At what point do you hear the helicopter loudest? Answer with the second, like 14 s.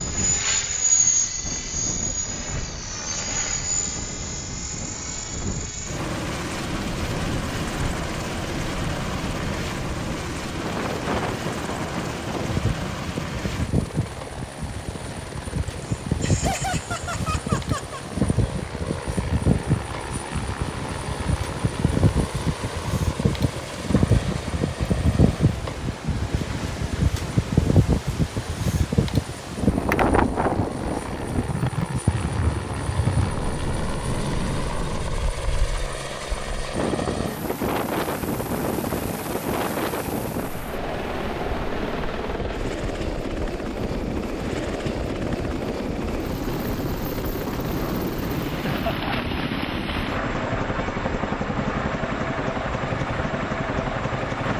1 s.